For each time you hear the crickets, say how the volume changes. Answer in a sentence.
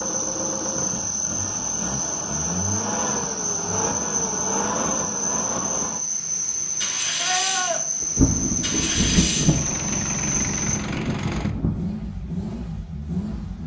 The crickets can be heard from 0.0 to 10.8 s, at a steady volume.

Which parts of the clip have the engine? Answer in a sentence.
The engine can be heard from 0.0 to 13.6 s.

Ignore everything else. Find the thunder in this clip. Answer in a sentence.
You can hear the thunder from 8.0 to 11.9 s.